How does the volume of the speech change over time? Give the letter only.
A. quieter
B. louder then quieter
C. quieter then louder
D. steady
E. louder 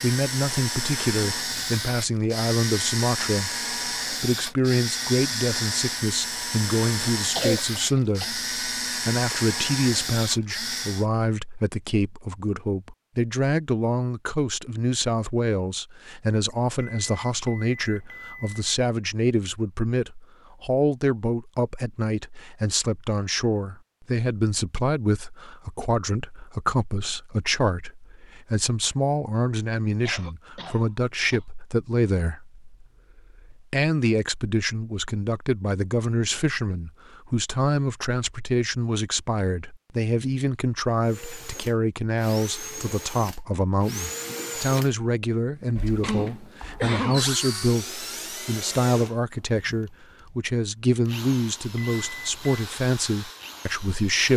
D.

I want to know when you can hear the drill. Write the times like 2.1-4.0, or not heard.
0.0-11.1, 41.0-54.3.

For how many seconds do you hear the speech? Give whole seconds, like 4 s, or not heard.
54 s.